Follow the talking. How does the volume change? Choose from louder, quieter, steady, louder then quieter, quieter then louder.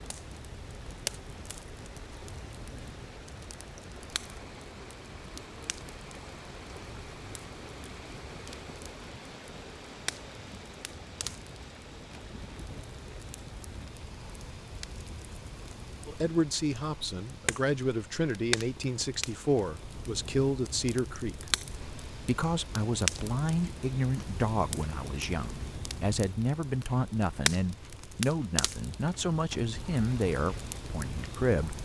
steady.